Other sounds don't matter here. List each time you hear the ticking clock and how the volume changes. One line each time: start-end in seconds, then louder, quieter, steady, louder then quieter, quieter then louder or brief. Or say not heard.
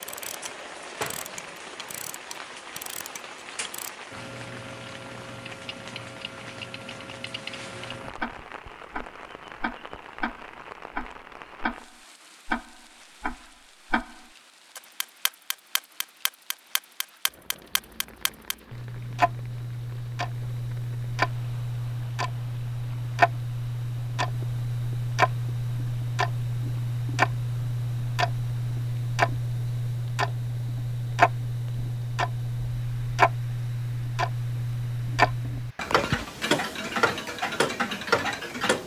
0.0-38.8 louder.